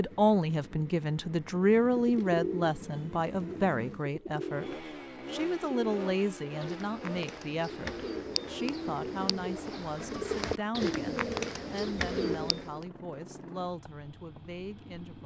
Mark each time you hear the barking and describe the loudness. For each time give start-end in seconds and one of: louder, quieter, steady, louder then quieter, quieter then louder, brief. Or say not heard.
not heard.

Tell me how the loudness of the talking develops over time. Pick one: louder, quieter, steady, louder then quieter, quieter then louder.
quieter.